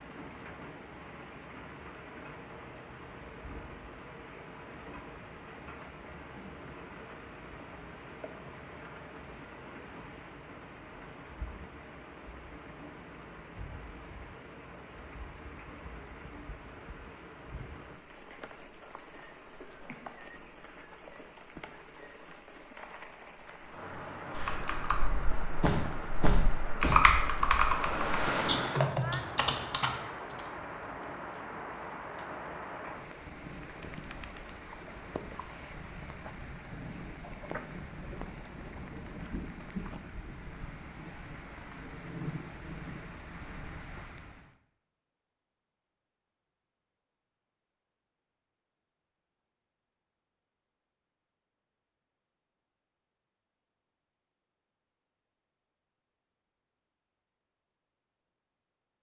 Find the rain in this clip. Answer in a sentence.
You can hear the rain from 0.0 to 44.5 s.